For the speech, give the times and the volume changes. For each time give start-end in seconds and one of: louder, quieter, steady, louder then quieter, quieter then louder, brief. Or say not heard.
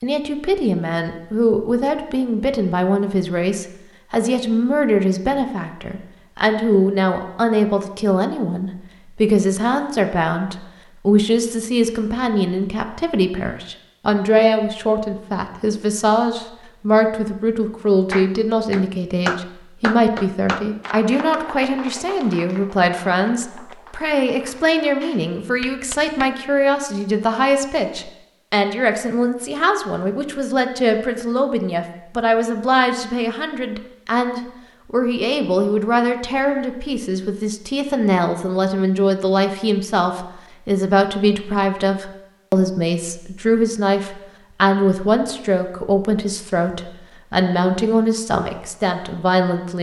0.0-49.7 steady.